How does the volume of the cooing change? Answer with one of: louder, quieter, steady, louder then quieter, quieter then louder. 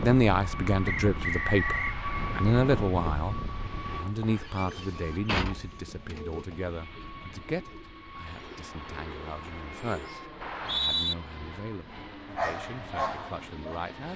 quieter then louder.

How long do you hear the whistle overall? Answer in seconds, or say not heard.
2 s.